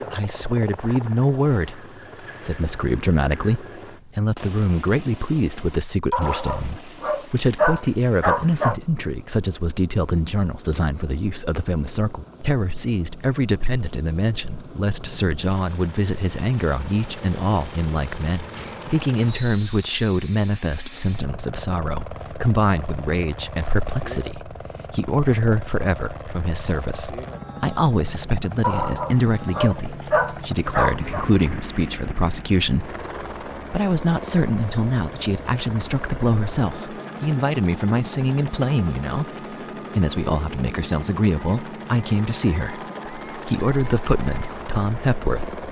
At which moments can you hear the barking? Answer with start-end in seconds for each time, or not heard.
6.1-8.8, 28.6-31.2.